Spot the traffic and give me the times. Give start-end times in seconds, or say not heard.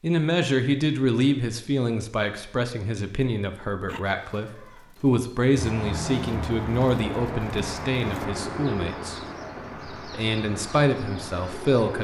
5.5-12.0.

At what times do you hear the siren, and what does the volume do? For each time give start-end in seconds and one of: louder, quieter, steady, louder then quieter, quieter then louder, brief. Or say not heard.
not heard.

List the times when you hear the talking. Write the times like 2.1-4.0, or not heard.
0.0-9.2, 10.1-12.0.